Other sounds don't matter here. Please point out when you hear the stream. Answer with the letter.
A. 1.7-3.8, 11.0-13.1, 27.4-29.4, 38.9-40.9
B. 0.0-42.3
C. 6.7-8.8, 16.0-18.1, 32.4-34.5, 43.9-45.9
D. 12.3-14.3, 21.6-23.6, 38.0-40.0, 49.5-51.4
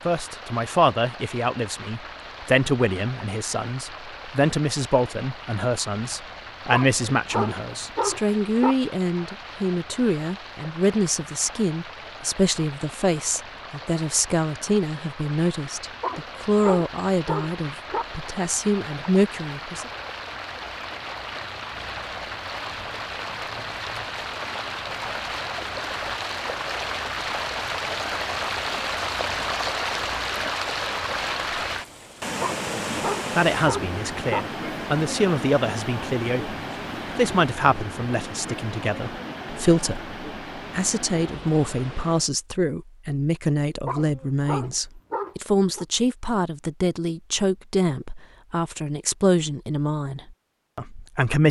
B.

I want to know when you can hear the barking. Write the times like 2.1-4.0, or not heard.
6.7-8.8, 16.0-18.1, 32.4-34.5, 43.9-45.9.